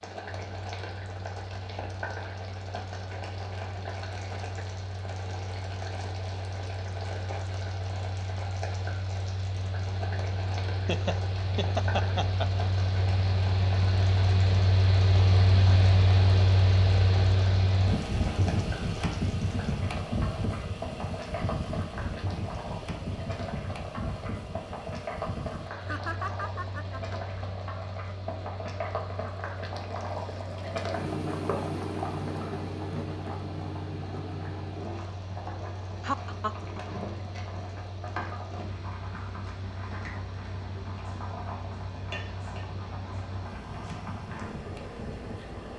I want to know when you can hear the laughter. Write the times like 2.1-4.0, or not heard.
10.8-12.7, 25.8-27.2, 36.0-36.8.